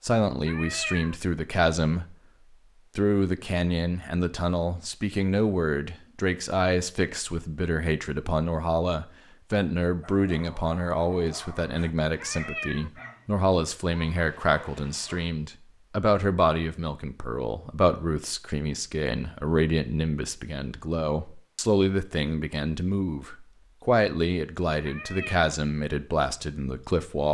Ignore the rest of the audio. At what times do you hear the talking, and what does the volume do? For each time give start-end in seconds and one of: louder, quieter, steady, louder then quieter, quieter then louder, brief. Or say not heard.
0.0-2.1 brief
3.0-27.2 steady.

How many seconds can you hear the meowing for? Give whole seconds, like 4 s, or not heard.
2 s.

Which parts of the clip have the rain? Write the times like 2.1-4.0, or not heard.
not heard.